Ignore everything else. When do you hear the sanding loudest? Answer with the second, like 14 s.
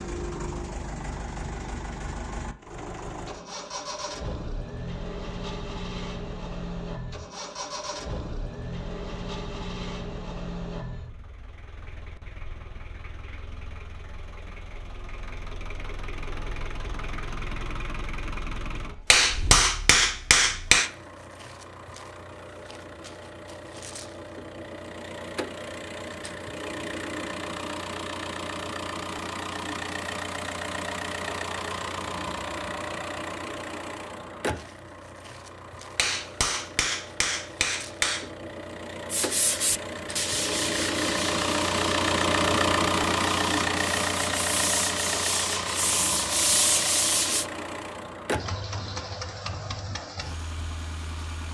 47 s.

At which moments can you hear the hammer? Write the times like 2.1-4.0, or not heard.
19.1-20.9, 36.0-38.3.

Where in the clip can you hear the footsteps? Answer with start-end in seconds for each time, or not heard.
not heard.